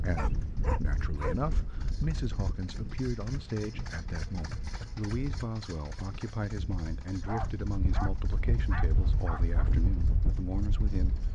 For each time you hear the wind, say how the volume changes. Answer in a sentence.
You can hear the wind from 0.0 to 11.3 s, getting quieter then louder.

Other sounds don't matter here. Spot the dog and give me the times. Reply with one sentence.
The dog can be heard from 0.1 to 1.4 s and from 7.2 to 9.7 s.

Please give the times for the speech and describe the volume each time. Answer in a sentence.
You can hear the speech from 0.0 to 11.3 s, at a steady volume.